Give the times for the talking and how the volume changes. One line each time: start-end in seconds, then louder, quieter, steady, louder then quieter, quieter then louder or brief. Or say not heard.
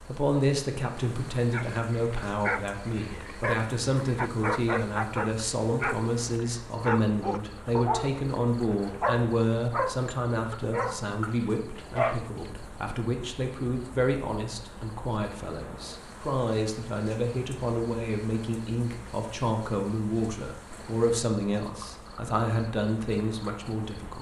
0.1-24.1 steady.